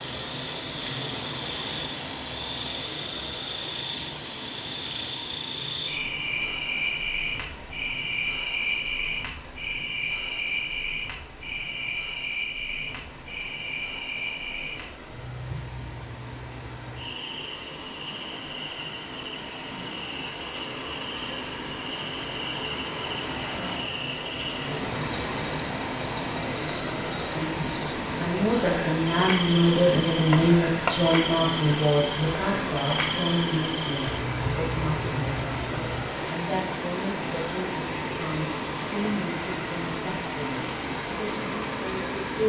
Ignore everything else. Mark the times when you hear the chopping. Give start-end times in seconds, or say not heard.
30.2-31.1.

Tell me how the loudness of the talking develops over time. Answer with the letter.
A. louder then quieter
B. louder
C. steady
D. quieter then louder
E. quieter
E.